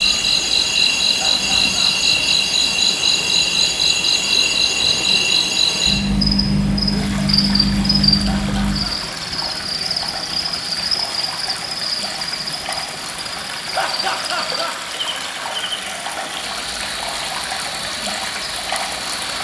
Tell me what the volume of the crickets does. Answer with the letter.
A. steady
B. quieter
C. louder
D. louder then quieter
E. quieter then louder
B.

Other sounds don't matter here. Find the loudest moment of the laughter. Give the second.
14 s.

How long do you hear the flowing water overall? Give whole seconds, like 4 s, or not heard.
19 s.